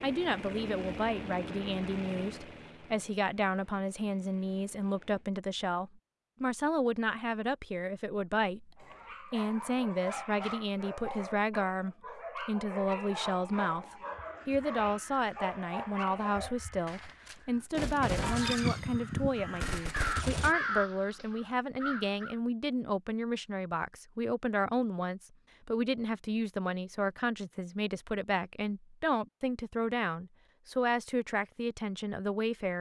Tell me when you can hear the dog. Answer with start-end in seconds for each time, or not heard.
8.8-16.6.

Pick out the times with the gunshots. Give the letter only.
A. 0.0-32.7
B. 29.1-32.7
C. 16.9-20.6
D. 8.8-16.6
C.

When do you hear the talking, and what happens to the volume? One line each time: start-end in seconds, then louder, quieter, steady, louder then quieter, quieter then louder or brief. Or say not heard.
0.0-32.7 steady.